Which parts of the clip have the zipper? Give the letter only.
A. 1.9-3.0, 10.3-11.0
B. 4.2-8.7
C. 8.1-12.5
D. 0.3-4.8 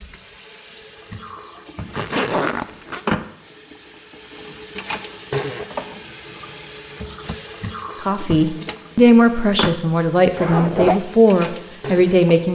A.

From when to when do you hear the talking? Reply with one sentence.
You can hear the talking from 8.1 to 12.5 s.